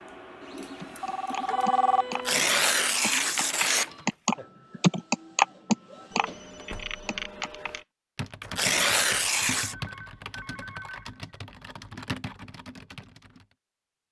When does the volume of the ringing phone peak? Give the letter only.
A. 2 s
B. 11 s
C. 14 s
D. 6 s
A.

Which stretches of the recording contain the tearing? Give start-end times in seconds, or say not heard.
2.1-3.9, 8.4-9.8.